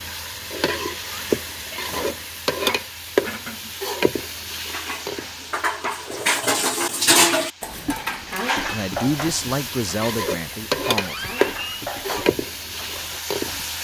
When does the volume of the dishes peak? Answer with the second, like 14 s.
7 s.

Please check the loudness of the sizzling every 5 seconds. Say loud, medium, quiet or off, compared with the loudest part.
loud, medium, loud.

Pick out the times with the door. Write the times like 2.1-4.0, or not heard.
10.9-12.2.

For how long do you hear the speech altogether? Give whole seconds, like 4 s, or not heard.
3 s.